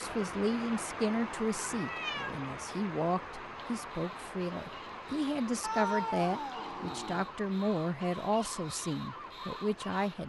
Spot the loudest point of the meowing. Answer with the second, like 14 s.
6 s.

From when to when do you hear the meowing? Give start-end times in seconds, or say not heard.
1.6-2.4, 5.6-7.3.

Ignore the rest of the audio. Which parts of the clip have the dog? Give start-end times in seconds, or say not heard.
not heard.